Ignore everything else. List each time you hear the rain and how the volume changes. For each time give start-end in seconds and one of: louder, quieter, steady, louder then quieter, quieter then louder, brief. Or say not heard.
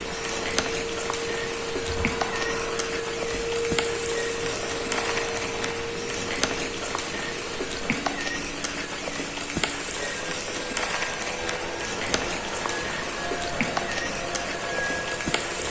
0.0-15.6 steady.